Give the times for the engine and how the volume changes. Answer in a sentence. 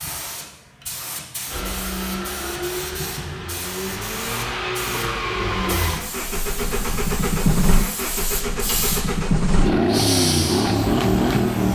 The engine can be heard from 1.4 to 11.6 s, getting louder.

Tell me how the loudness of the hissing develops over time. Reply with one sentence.
The volume of the hissing goes up.